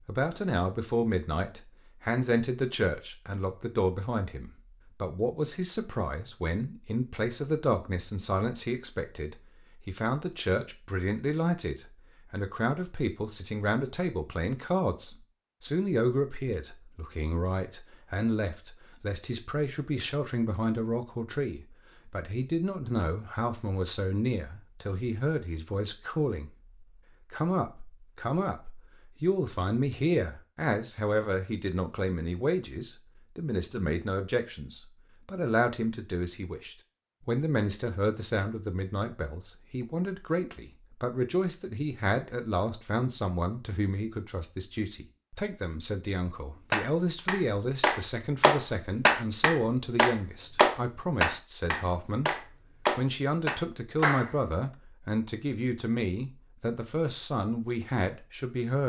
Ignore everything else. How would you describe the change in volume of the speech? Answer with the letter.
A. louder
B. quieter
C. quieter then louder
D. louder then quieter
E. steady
E.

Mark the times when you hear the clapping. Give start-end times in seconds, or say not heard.
46.7-54.4.